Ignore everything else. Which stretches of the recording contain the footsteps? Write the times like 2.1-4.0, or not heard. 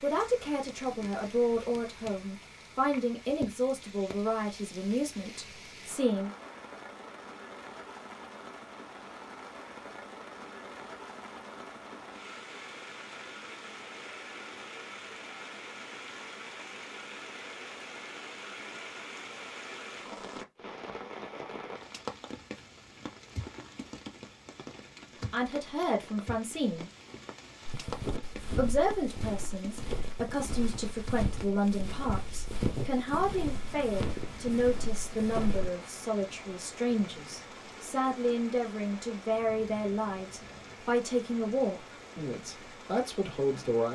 27.6-35.7.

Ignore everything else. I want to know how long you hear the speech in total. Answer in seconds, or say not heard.
23 s.